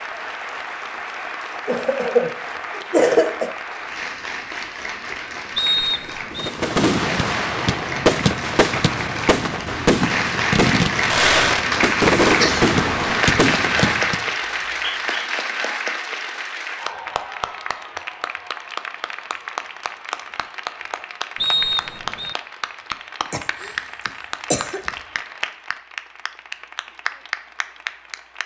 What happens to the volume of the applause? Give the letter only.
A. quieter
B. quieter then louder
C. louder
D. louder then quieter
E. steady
D.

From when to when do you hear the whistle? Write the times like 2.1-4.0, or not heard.
5.5-6.5, 14.4-15.3, 21.4-22.4.